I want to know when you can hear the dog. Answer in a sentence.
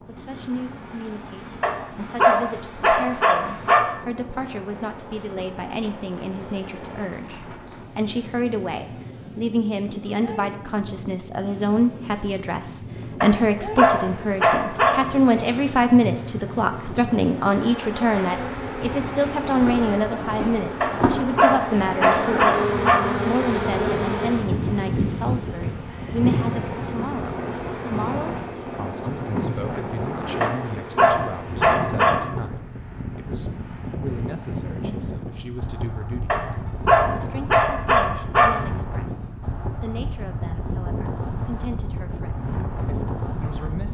You can hear the dog from 1.6 to 3.9 s, from 13.2 to 15.1 s, from 20.8 to 23.1 s, from 30.4 to 32.2 s and from 36.3 to 38.6 s.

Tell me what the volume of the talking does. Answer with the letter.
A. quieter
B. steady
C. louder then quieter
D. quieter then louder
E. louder
C.